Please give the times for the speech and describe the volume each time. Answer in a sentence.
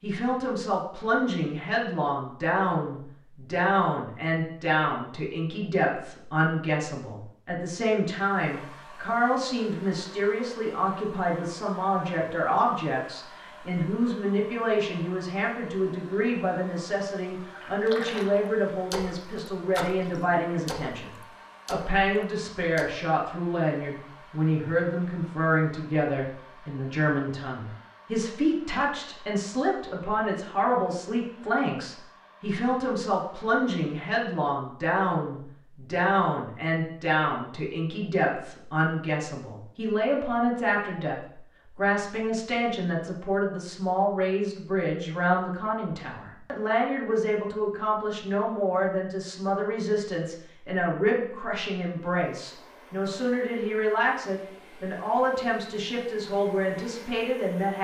The speech can be heard from 0.0 to 57.7 s, at a steady volume.